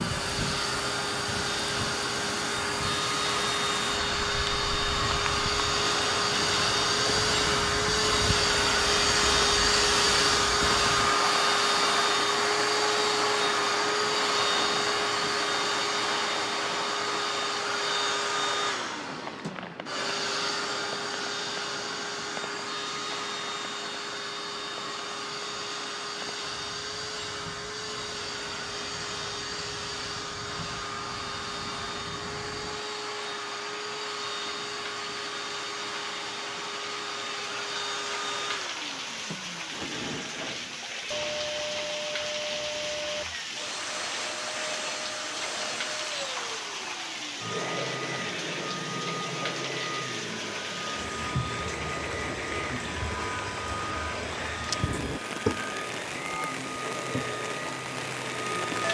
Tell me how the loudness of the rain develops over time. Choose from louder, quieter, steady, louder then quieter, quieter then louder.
quieter then louder.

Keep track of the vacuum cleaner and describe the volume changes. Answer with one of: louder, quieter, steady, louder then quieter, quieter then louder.
quieter.